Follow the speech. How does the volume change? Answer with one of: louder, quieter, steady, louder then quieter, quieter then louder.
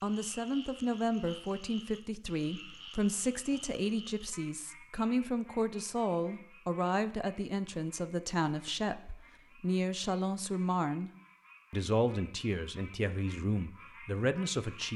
steady.